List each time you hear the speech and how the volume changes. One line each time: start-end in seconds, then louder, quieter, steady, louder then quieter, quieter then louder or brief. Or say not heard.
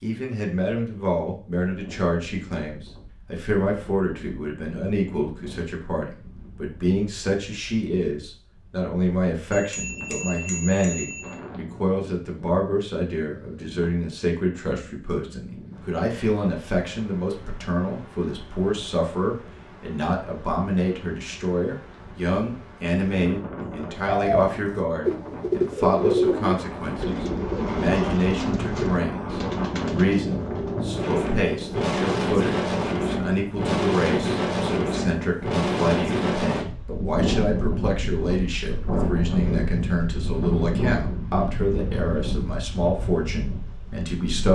0.0-44.5 steady.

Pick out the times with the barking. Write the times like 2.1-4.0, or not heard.
not heard.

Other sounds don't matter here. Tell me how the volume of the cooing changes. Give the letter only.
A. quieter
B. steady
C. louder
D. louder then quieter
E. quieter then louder
A.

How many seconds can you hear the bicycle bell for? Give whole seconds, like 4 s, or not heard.
2 s.